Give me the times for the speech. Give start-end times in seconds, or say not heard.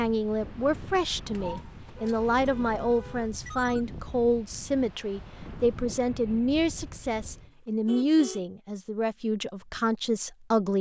0.0-10.7.